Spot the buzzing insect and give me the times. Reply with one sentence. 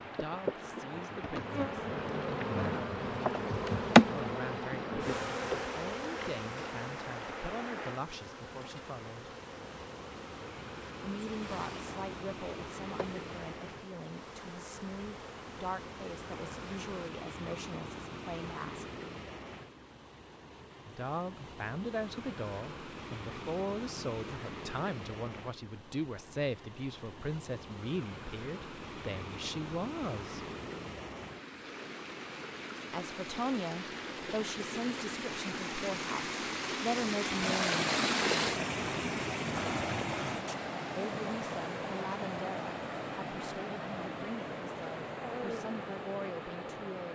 The buzzing insect can be heard from 0.0 to 17.1 s.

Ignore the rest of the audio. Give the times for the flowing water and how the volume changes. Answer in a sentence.
The flowing water can be heard from 0.0 to 47.1 s, getting louder.